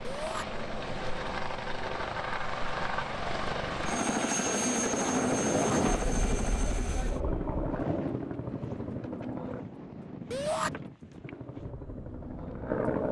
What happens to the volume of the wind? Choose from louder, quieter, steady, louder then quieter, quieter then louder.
quieter.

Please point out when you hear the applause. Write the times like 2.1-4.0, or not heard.
not heard.